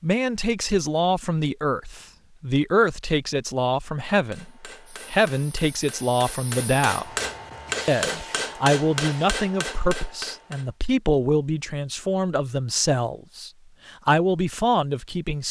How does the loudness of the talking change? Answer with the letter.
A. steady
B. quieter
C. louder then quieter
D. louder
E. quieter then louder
A.